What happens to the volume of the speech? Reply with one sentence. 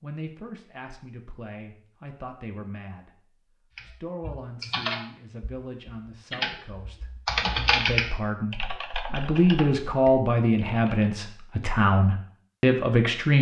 The loudness of the speech goes up.